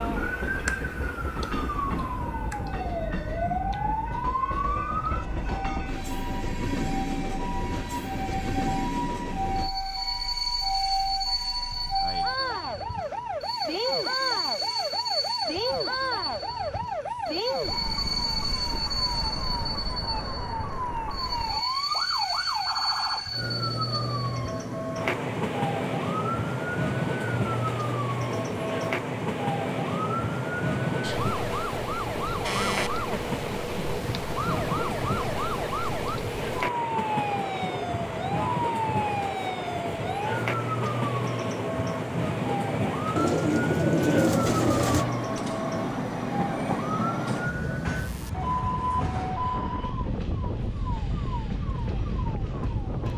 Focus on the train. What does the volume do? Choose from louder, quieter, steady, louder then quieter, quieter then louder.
steady.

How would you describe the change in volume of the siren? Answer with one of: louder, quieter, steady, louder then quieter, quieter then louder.
steady.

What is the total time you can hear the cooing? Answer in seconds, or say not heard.
2 s.